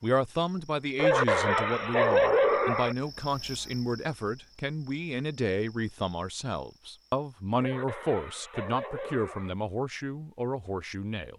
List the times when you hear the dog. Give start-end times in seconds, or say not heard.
0.9-3.0, 7.5-9.6.